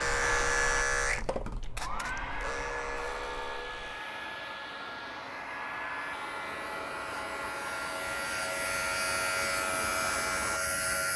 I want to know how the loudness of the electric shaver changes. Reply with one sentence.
The volume of the electric shaver goes down, then up.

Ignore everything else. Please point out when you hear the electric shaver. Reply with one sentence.
You can hear the electric shaver from 0.0 to 11.1 s.